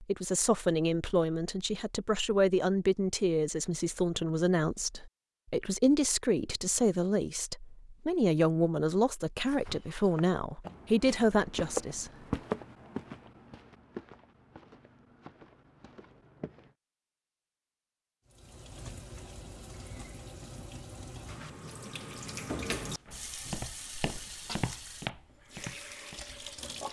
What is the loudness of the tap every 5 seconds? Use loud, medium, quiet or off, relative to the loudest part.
off, off, off, medium, loud, loud.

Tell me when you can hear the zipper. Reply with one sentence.
You can't hear the zipper here.